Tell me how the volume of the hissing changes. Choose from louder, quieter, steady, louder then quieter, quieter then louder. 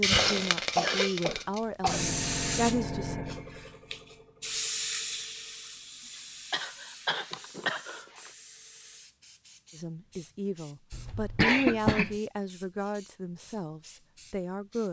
quieter.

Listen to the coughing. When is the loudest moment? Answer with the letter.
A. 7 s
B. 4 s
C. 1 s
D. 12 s
D.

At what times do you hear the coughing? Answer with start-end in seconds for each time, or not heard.
0.1-2.0, 6.5-8.3, 10.9-12.2.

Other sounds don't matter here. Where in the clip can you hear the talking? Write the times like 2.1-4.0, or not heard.
0.0-3.2, 9.8-14.8.